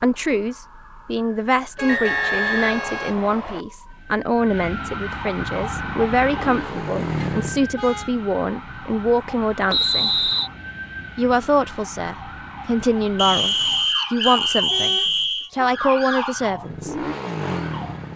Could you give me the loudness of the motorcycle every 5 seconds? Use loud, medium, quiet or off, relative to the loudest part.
off, loud, off, loud.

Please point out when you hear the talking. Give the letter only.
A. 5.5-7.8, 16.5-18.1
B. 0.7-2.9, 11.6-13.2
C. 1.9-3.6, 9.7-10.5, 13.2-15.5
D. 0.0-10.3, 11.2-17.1
D.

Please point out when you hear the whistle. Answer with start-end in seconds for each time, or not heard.
1.9-3.6, 9.7-10.5, 13.2-15.5.